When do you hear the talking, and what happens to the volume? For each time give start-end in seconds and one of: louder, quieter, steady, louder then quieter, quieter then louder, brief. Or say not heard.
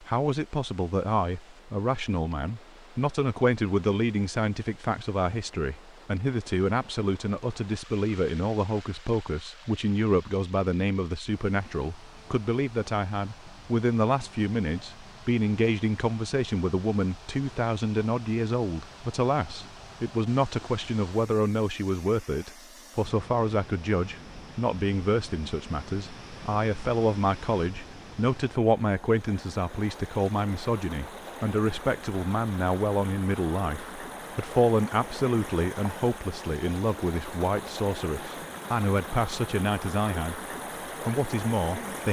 0.0-40.4 steady
41.0-42.0 brief.